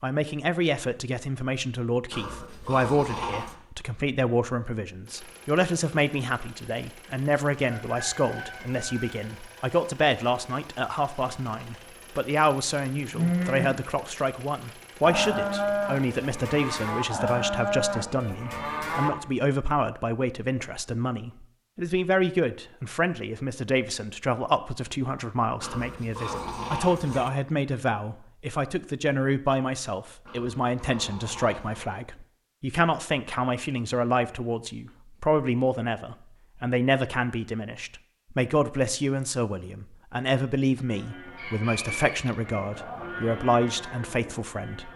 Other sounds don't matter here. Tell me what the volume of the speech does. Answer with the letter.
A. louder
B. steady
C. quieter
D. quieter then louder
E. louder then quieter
B.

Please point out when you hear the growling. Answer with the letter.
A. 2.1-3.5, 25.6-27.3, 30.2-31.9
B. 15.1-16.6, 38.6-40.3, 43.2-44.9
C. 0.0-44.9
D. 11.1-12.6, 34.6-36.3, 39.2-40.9
A.